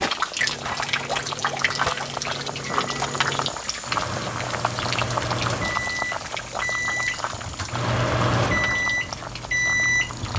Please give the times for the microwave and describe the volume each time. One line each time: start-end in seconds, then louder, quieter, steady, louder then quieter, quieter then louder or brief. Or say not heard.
0.2-10.3 louder.